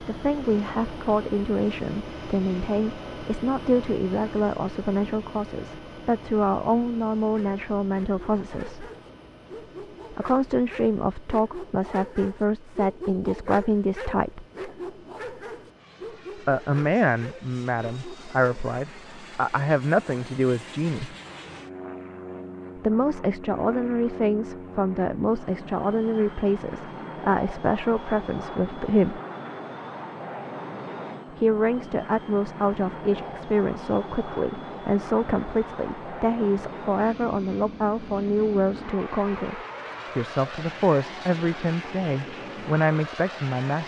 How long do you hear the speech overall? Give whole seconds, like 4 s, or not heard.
37 s.